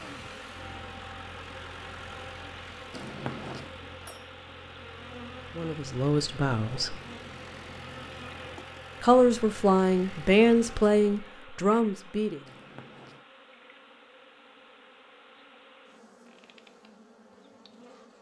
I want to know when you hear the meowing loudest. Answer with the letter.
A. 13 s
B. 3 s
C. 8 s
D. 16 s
B.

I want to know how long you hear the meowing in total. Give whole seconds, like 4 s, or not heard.
4 s.